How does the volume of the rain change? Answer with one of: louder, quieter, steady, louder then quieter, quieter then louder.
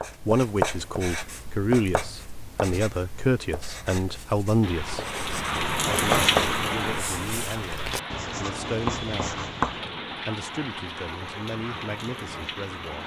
quieter.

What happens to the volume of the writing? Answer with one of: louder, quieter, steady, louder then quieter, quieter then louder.
quieter then louder.